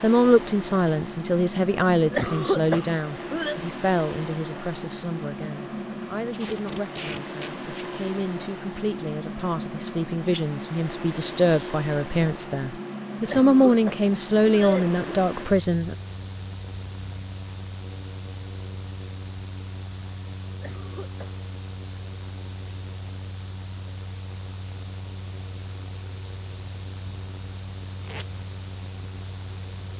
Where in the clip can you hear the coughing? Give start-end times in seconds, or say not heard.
2.1-3.5, 13.2-15.2, 20.6-21.4.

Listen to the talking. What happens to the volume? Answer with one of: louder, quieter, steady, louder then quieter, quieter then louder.
quieter then louder.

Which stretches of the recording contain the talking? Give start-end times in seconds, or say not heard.
0.0-15.9.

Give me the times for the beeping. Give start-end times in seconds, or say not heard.
not heard.